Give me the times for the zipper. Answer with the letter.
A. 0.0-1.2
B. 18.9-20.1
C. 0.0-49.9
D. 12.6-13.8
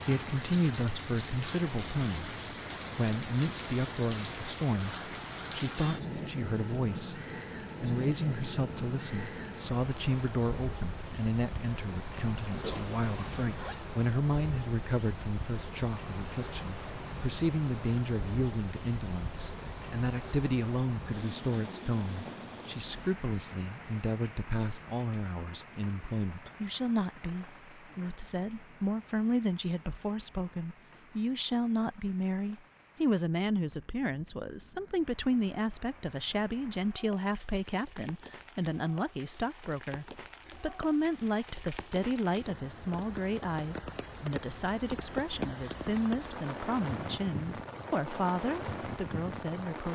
D.